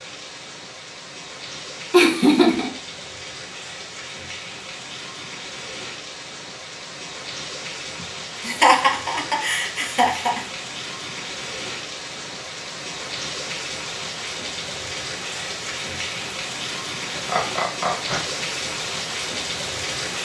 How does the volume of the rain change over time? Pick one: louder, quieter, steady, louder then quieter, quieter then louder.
louder.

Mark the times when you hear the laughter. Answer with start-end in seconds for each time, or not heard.
1.9-2.7, 8.4-10.4, 17.1-18.2.